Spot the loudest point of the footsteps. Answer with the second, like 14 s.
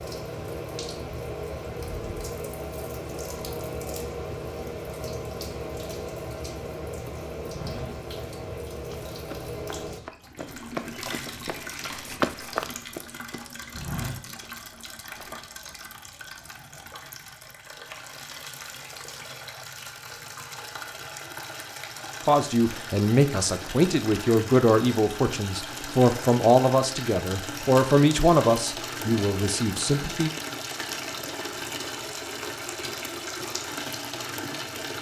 12 s.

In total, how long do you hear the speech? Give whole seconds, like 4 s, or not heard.
8 s.